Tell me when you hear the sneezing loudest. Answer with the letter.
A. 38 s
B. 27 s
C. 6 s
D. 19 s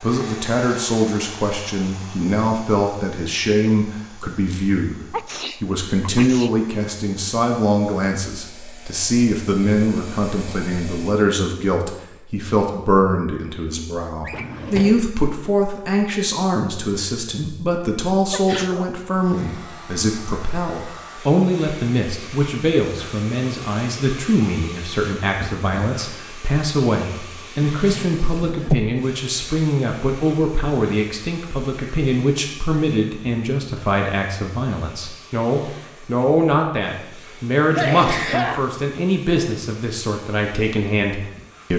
A.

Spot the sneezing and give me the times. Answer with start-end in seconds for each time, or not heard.
5.1-6.5, 18.3-18.9, 37.7-38.6.